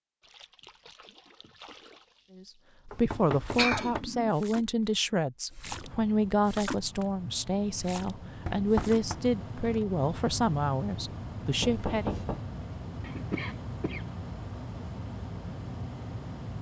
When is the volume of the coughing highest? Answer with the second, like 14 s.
4 s.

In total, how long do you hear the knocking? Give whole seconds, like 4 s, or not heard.
3 s.